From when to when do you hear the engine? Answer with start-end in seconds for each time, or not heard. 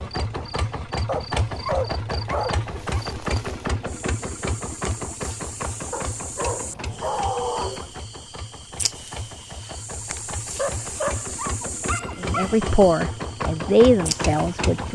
0.0-14.9.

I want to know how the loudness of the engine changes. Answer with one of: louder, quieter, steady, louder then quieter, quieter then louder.
quieter then louder.